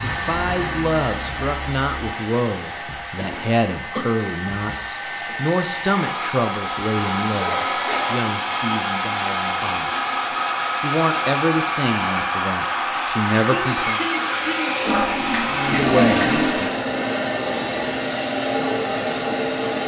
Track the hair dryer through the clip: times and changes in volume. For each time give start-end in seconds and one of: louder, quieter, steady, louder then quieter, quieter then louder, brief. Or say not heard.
0.0-19.8 louder.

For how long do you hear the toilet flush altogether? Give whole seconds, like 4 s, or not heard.
2 s.